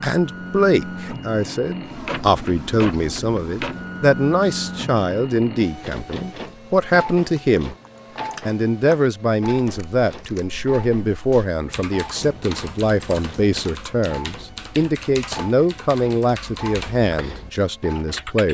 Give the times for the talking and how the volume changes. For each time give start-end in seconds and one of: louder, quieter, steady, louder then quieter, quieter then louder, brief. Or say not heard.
0.0-7.8 steady
8.4-18.4 steady.